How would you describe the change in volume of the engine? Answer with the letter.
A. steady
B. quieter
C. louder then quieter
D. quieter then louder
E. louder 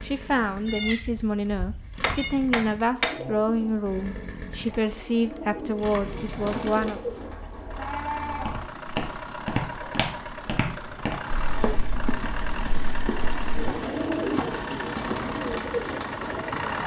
E.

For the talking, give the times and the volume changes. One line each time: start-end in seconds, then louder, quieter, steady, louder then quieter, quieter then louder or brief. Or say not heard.
0.0-7.0 steady.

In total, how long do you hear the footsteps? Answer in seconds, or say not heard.
7 s.